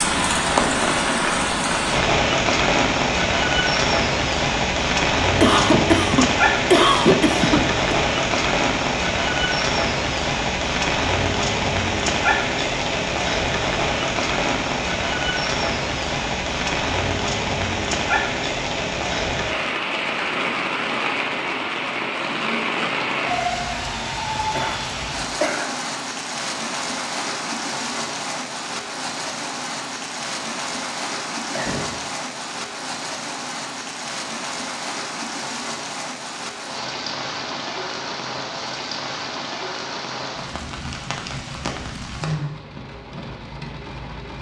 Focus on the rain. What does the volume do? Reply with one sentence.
The loudness of the rain goes down.